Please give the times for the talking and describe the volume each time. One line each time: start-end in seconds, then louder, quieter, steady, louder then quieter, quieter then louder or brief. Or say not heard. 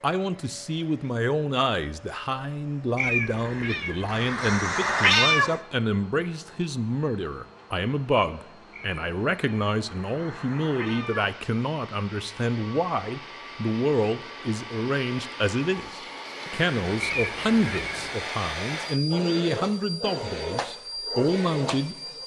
0.0-21.9 steady.